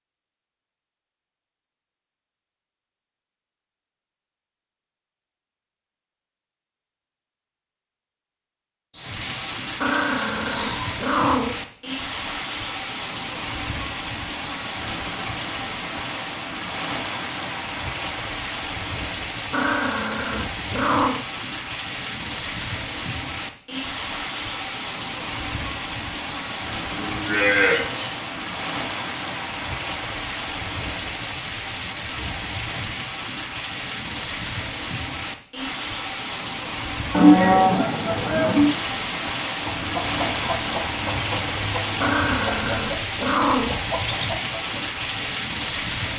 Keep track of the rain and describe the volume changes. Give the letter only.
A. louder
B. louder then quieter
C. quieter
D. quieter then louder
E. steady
E.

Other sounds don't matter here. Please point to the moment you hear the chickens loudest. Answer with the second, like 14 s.
44 s.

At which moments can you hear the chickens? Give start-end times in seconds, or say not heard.
39.6-45.3.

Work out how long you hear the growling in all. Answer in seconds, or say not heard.
5 s.